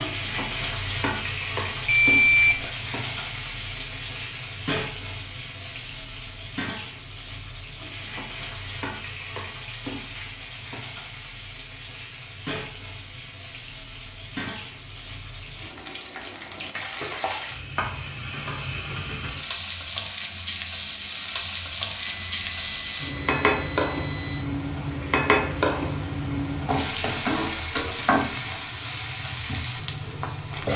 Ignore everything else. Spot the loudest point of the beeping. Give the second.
2 s.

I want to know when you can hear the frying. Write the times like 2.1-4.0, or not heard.
0.0-30.7.